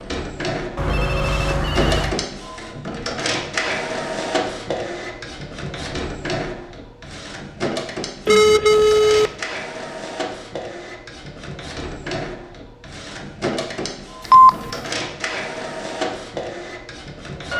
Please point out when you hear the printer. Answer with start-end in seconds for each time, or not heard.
0.0-17.5.